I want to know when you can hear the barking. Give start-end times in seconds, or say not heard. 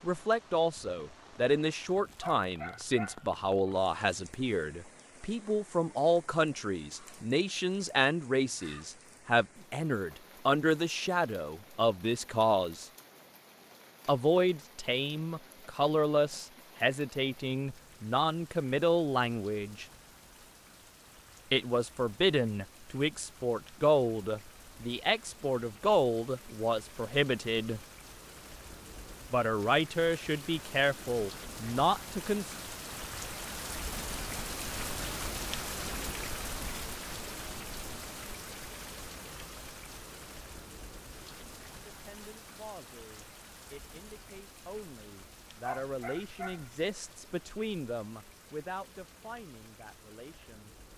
2.2-3.8, 45.6-47.1.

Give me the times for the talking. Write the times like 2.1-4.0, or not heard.
0.0-12.8, 14.1-19.9, 21.5-27.8, 29.3-32.5, 41.9-50.8.